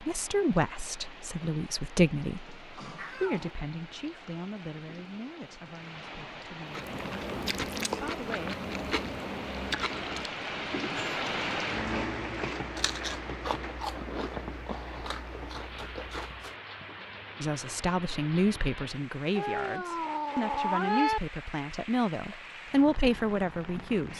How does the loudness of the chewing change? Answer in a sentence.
The loudness of the chewing goes down.